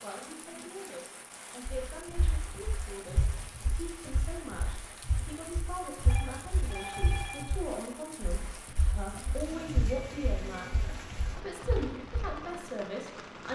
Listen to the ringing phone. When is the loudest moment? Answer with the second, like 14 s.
7 s.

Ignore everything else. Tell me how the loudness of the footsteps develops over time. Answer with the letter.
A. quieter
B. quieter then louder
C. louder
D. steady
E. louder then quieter
D.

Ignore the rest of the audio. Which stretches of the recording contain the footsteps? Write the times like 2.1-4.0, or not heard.
1.6-12.2.